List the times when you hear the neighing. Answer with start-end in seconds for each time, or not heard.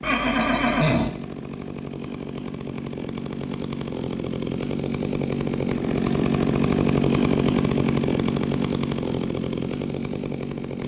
0.0-1.1.